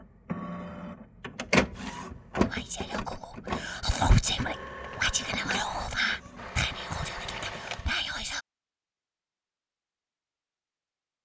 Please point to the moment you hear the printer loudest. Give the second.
2 s.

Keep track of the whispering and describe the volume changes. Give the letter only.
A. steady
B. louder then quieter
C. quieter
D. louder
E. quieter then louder
B.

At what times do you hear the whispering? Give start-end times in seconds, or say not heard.
2.5-8.4.